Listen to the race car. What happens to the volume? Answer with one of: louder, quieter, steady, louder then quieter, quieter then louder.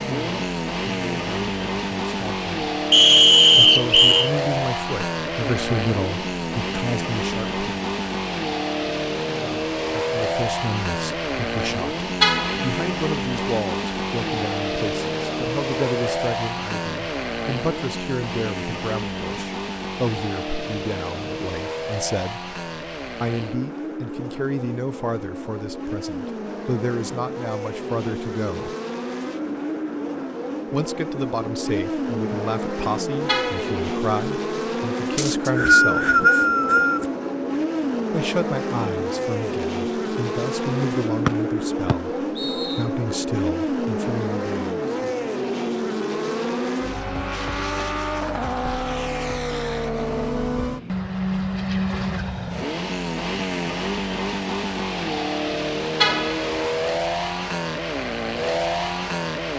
steady.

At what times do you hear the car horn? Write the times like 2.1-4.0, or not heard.
12.2-12.8, 33.2-34.0, 56.0-56.6.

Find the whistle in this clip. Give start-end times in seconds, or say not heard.
2.9-4.3, 35.1-37.0, 41.2-42.8.